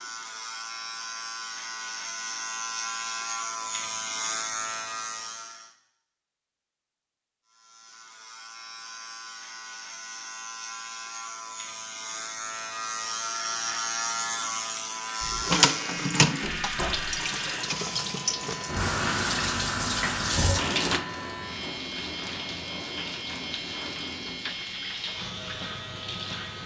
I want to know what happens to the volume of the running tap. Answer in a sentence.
The volume of the running tap goes down.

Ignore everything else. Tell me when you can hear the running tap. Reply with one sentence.
The running tap can be heard from 15.2 to 26.6 s.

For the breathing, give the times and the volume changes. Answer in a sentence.
The breathing can't be heard in this clip.